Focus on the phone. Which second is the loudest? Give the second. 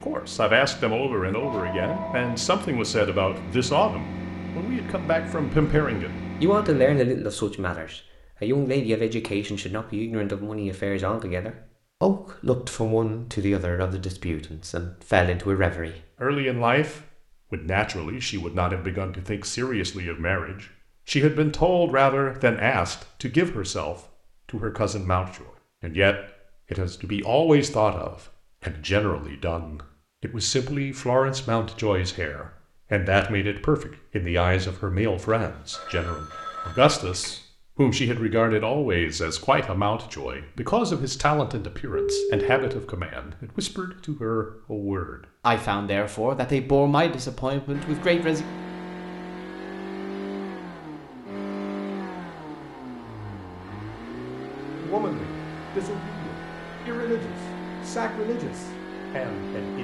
42 s.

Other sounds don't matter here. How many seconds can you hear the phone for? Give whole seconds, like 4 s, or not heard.
4 s.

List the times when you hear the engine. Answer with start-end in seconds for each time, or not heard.
0.0-7.0, 47.7-59.8.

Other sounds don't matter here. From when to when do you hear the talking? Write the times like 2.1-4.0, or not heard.
0.0-48.5, 54.8-59.8.